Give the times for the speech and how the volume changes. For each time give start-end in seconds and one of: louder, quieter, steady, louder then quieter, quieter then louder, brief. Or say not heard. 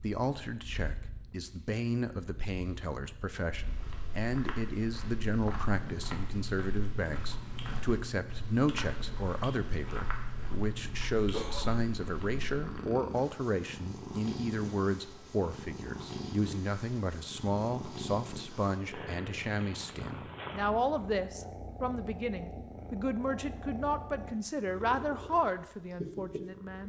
0.0-26.8 steady.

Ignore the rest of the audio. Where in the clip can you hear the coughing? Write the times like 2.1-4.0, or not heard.
11.3-11.8.